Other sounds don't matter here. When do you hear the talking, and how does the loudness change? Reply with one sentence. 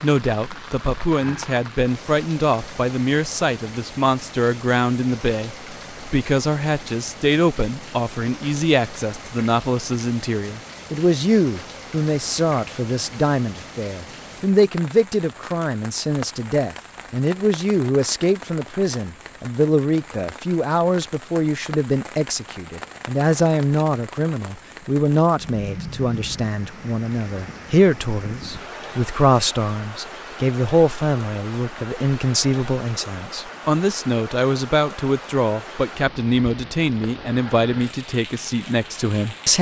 The talking can be heard from 0.0 to 39.5 s, at a steady volume.